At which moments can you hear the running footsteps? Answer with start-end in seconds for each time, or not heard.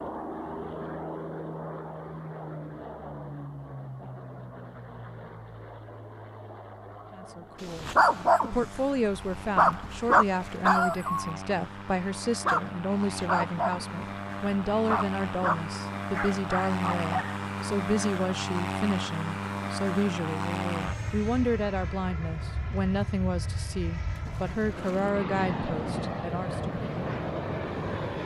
not heard.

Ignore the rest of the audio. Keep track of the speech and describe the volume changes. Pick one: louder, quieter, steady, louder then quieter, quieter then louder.
steady.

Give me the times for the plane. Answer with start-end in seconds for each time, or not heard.
0.0-28.2.